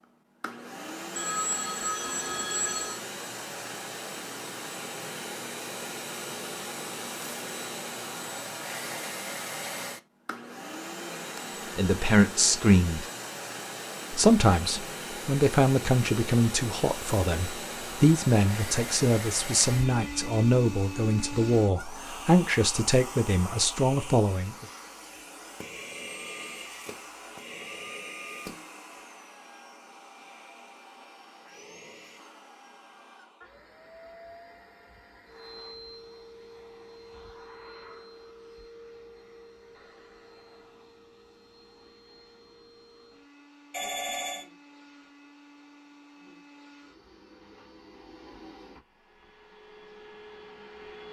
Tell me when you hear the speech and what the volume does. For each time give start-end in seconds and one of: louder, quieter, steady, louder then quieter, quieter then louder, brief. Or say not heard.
11.8-13.1 brief
14.1-24.6 steady.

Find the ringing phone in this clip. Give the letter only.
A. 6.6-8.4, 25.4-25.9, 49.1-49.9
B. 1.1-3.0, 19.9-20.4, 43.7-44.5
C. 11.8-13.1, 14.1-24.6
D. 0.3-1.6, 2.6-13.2
B.